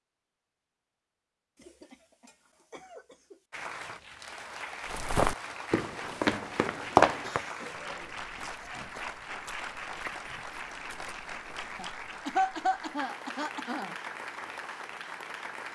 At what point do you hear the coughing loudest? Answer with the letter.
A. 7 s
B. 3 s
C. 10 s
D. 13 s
D.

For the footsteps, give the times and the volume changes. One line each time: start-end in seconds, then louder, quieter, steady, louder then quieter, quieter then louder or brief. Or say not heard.
4.9-12.0 louder then quieter.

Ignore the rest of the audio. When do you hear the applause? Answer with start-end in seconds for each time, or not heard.
3.5-15.7.